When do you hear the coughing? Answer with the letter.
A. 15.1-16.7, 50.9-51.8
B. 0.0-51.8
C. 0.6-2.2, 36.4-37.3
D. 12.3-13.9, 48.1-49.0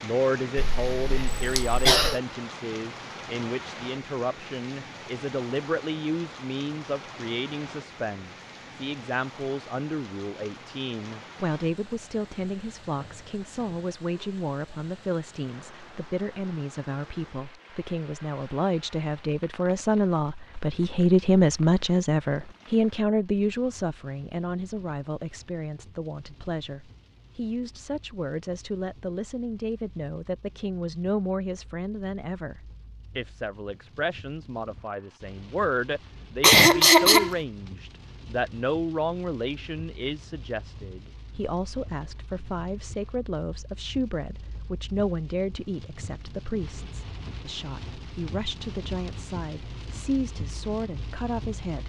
C.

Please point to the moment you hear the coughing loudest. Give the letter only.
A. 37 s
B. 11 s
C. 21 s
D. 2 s
A.